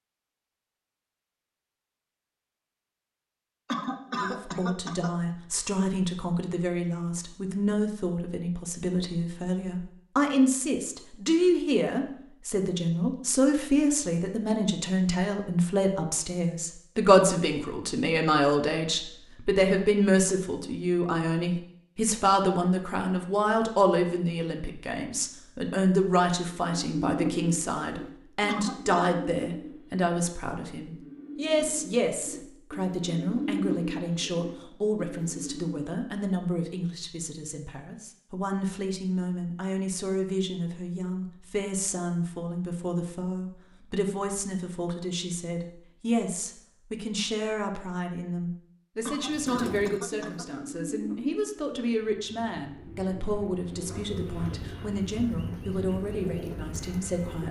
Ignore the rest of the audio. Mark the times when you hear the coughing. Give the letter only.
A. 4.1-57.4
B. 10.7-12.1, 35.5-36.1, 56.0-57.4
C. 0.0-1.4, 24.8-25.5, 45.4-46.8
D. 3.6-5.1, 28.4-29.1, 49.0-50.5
D.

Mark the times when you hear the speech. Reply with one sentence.
You can hear the speech from 4.1 to 57.4 s.